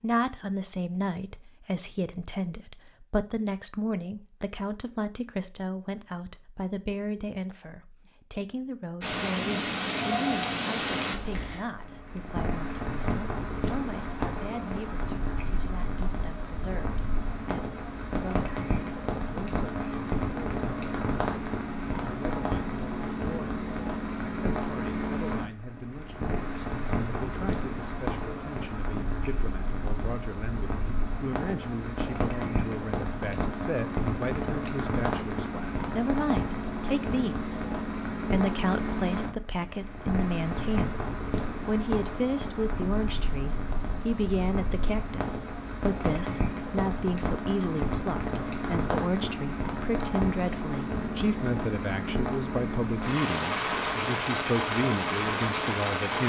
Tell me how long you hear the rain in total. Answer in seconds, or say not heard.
47 s.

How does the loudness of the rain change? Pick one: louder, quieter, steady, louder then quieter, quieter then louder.
steady.